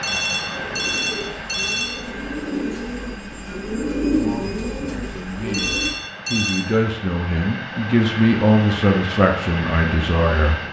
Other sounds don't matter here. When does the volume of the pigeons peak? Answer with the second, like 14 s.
4 s.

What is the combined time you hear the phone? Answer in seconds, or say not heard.
3 s.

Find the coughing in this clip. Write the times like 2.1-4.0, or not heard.
not heard.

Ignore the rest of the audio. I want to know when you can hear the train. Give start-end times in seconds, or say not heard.
0.0-10.6.